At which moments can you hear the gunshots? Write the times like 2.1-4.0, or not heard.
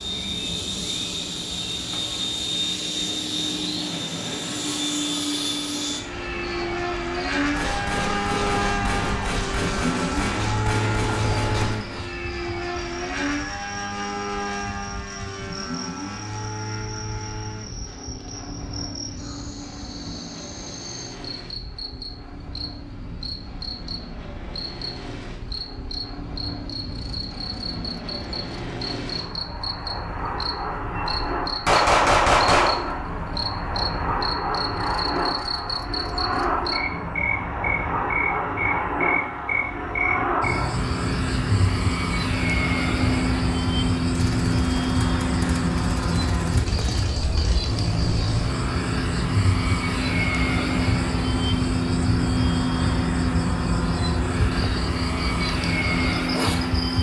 7.5-11.9, 31.1-32.9, 44.1-47.0.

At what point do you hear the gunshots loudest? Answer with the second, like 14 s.
32 s.